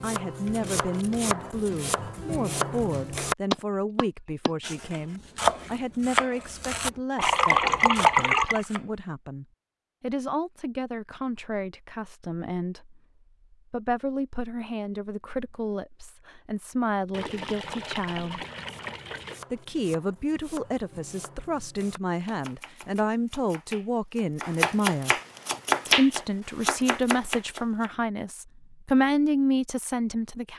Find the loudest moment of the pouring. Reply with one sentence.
The loudest moment of the pouring is at 8 seconds.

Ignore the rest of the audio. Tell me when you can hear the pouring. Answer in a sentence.
The pouring can be heard from 7.2 to 8.7 s and from 17.1 to 19.4 s.